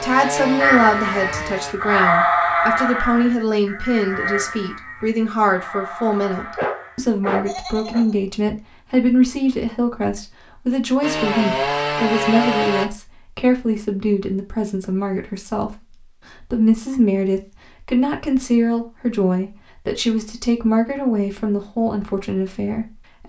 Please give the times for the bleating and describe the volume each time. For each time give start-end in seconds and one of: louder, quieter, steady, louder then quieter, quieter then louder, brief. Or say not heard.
0.6-8.2 quieter.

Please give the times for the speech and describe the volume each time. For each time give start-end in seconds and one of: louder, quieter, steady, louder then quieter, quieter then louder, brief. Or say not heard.
0.0-23.2 steady.